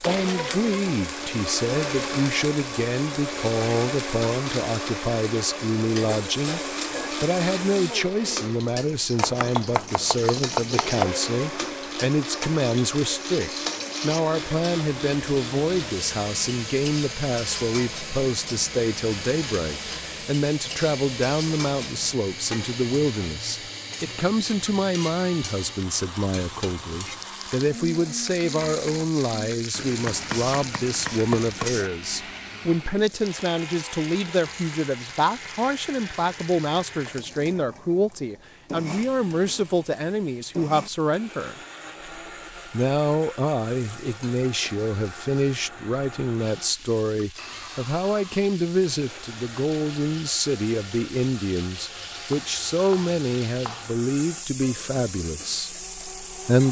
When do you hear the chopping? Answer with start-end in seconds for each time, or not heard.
9.2-11.2, 30.1-31.9, 52.3-53.9.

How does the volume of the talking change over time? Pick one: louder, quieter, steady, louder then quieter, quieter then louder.
steady.